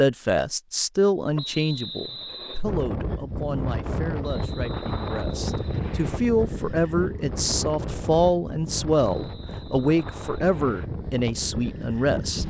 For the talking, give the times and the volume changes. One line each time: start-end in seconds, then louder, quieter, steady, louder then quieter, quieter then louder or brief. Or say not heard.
0.0-12.4 quieter then louder.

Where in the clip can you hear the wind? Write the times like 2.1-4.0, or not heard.
2.6-12.4.